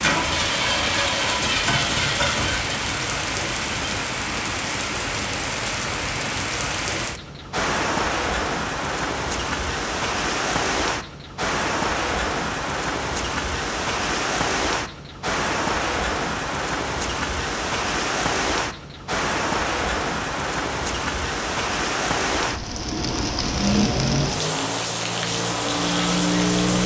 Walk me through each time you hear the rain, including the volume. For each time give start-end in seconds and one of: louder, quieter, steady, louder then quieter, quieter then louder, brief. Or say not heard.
0.0-26.8 steady.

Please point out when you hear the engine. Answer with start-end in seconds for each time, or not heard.
0.0-4.1, 23.4-26.8.